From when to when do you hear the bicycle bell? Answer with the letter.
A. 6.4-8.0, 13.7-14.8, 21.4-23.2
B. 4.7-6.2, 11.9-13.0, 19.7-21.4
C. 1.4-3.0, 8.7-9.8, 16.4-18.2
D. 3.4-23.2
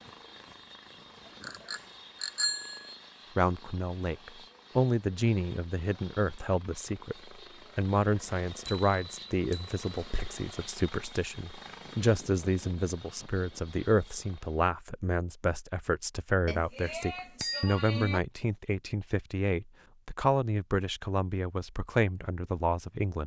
C.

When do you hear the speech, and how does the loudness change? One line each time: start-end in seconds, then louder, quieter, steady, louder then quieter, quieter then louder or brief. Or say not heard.
3.4-23.2 steady.